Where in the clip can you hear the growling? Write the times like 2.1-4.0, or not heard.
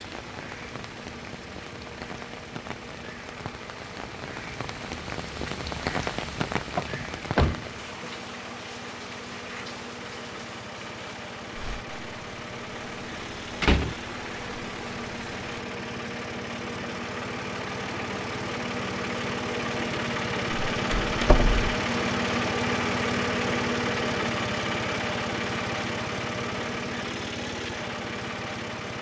not heard.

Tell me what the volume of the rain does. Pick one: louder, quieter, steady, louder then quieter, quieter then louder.
louder then quieter.